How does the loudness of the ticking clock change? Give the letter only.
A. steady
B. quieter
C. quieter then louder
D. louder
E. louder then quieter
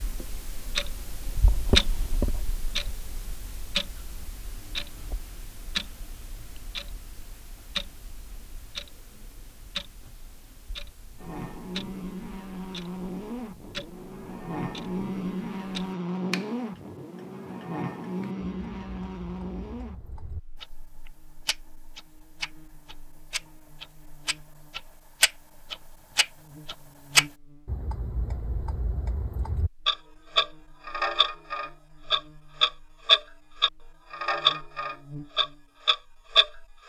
C.